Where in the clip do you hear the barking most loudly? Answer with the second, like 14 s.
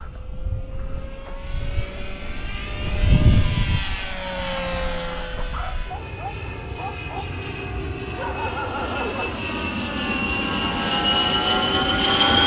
9 s.